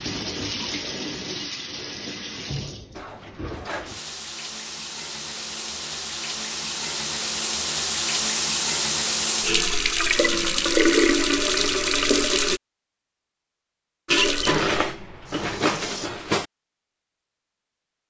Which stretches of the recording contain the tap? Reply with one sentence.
The tap can be heard from 0.0 to 12.6 s and from 14.1 to 16.1 s.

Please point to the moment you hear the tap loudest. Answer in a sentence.
The volume of the tap peaks at 11 seconds.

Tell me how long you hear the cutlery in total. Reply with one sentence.
The cutlery can be heard for 3 seconds in total.